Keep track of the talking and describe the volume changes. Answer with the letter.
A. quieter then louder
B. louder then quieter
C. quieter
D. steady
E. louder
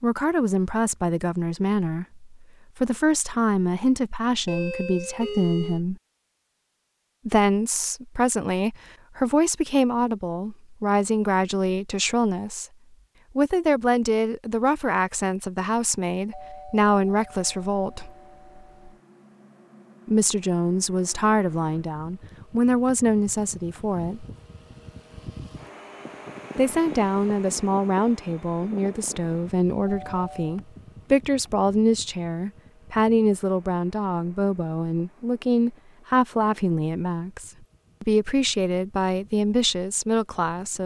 D.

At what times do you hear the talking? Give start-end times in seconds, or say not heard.
0.0-6.0, 7.2-12.7, 13.3-18.1, 20.1-24.2, 26.6-40.8.